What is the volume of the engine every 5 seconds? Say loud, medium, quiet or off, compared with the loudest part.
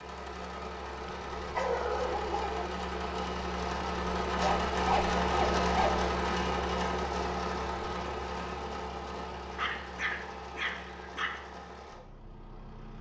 loud, loud, quiet.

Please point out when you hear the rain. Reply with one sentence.
The rain can't be heard in this clip.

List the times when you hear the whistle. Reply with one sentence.
The whistle can't be heard in this clip.